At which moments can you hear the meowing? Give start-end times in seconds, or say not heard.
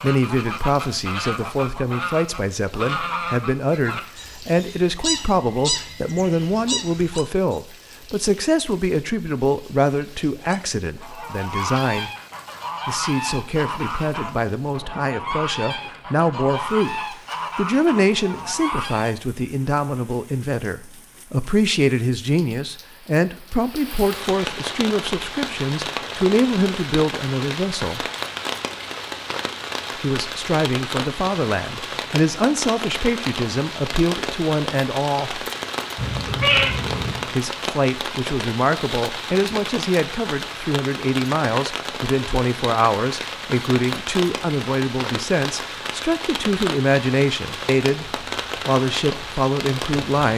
36.0-37.2.